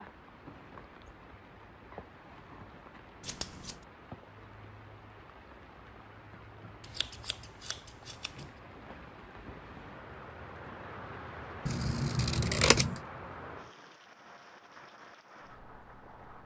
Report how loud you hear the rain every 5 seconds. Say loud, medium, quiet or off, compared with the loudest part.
medium, medium, loud, medium.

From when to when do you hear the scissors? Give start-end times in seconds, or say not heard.
3.2-3.9, 6.8-8.5, 11.7-13.0.